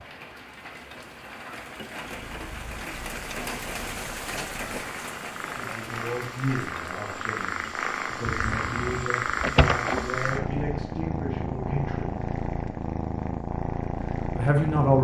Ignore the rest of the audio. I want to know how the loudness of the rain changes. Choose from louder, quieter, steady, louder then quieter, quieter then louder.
louder then quieter.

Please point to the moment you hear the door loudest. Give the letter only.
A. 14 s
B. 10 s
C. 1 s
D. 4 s
B.